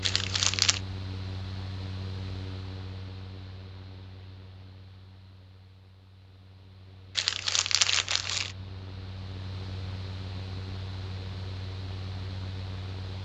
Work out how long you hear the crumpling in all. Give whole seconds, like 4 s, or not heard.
2 s.